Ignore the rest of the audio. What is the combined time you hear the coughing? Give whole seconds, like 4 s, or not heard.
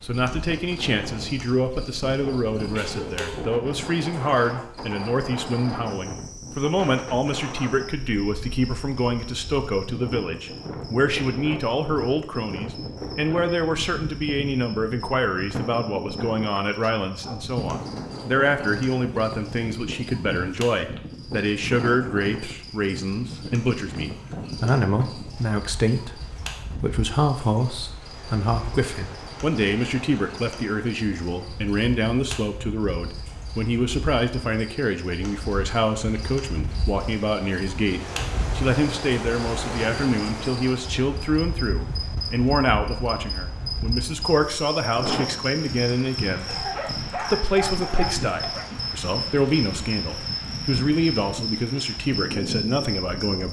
3 s.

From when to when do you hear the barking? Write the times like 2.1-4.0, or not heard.
16.6-17.6, 46.8-48.7.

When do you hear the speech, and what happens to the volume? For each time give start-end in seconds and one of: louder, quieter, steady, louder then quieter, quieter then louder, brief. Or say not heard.
0.0-53.4 steady.